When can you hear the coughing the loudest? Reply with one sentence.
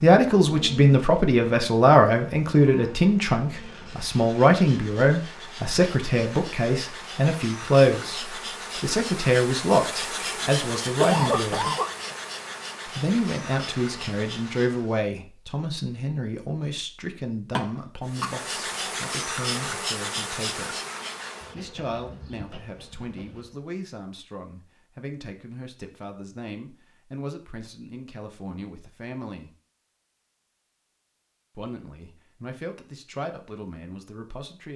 The volume of the coughing peaks at 11 seconds.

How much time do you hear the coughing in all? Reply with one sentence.
The coughing can be heard for 2 seconds in total.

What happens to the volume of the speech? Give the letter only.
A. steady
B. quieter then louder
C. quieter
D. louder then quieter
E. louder
C.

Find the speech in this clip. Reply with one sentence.
The speech can be heard from 0.0 to 11.7 s, from 12.8 to 20.8 s, from 21.6 to 29.5 s and from 31.6 to 34.7 s.